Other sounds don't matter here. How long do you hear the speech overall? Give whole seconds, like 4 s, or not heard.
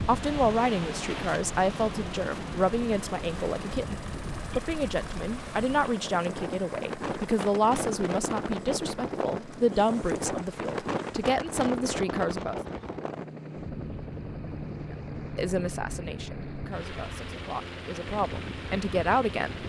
17 s.